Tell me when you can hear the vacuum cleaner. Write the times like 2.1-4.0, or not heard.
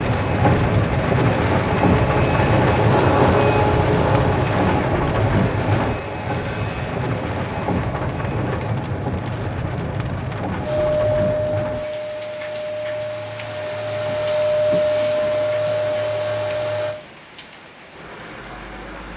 0.0-8.8, 10.6-17.0.